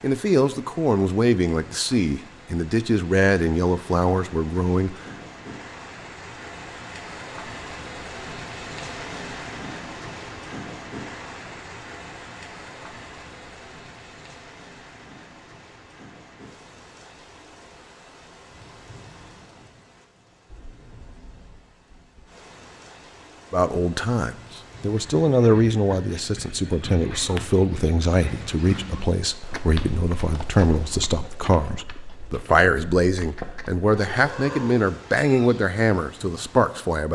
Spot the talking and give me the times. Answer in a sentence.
The talking can be heard from 0.0 to 5.0 s and from 23.5 to 37.1 s.